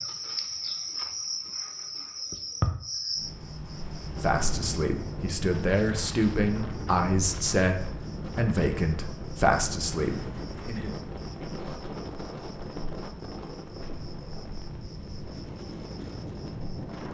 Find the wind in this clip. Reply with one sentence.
The wind can be heard from 4.2 to 17.0 s.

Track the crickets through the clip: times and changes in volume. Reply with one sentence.
You can hear the crickets from 0.0 to 17.0 s, getting quieter.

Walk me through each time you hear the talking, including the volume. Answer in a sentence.
The talking can be heard from 4.2 to 10.9 s, at a steady volume.